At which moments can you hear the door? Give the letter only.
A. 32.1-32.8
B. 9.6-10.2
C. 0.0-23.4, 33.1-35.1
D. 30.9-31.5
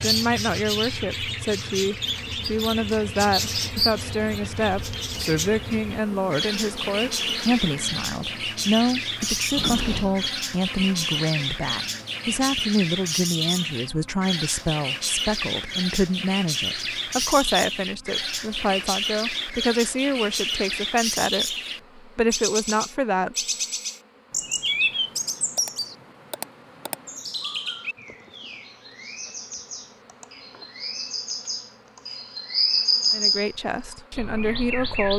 B.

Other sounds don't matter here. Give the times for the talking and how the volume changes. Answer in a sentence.
The talking can be heard from 0.0 to 23.4 s, at a steady volume; and briefly from 33.1 to 35.1 s.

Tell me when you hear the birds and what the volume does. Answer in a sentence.
The birds can be heard from 0.0 to 35.1 s, at a steady volume.